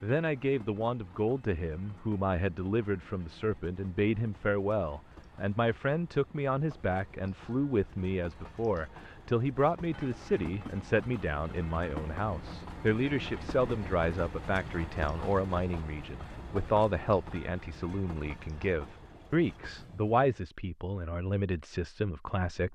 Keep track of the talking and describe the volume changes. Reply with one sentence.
The loudness of the talking stays about the same.